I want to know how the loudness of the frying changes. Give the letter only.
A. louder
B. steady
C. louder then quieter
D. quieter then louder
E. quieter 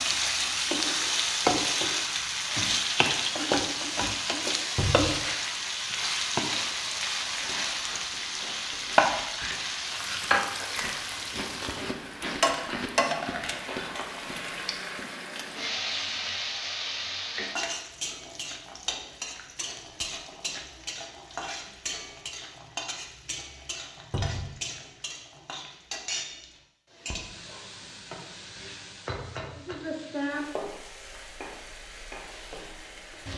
E.